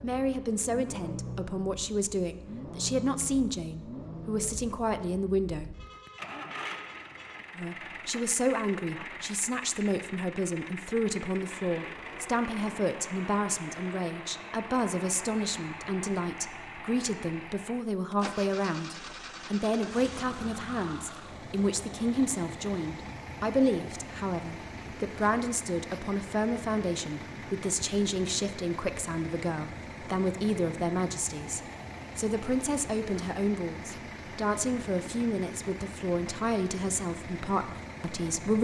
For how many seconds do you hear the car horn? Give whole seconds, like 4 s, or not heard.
2 s.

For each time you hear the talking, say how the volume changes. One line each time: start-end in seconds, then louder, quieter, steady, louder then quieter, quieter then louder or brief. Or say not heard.
0.0-5.7 steady
7.5-38.5 steady.